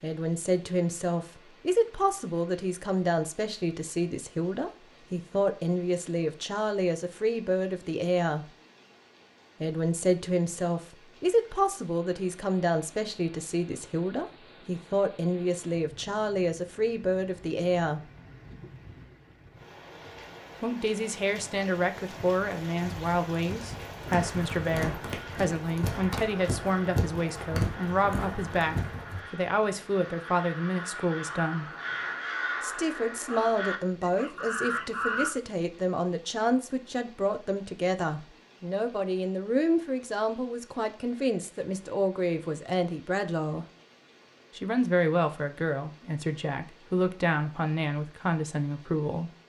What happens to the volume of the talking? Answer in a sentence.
The loudness of the talking stays about the same.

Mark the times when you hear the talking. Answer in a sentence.
The talking can be heard from 0.0 to 8.5 s, from 9.6 to 18.1 s, from 20.6 to 31.6 s, from 32.6 to 43.6 s and from 44.5 to 49.3 s.